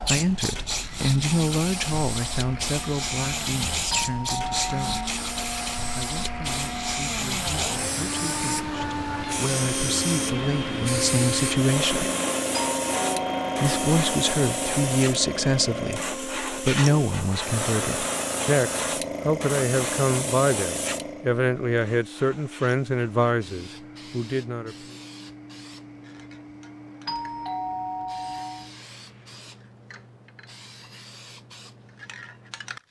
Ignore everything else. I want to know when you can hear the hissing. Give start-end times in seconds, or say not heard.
0.0-32.8.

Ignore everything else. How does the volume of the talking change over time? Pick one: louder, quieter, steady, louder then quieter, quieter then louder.
quieter then louder.